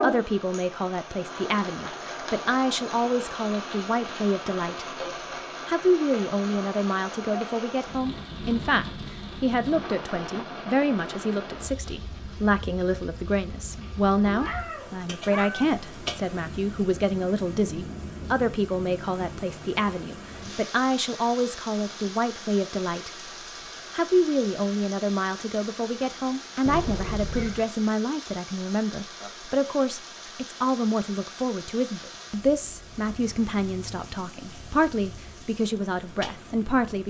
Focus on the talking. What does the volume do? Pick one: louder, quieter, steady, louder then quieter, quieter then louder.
steady.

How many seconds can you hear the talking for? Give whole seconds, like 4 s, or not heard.
36 s.